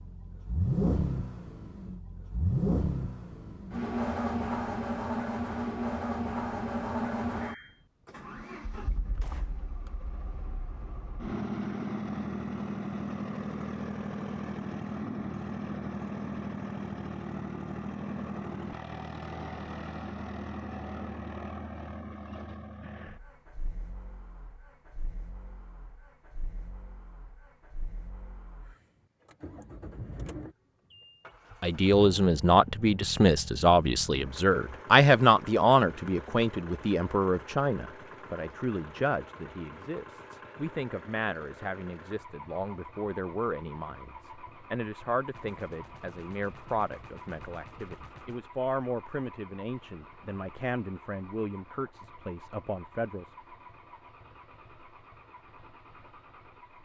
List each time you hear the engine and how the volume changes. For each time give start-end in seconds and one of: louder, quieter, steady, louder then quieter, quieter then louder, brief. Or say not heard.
0.0-56.7 quieter.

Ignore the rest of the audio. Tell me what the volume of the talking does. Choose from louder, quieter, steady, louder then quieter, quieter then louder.
quieter.